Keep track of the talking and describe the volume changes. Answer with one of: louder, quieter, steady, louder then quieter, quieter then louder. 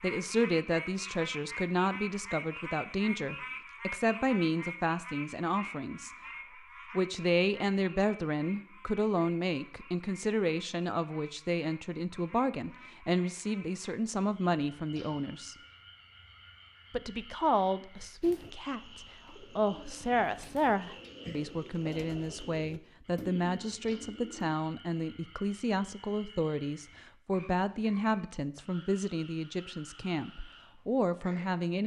steady.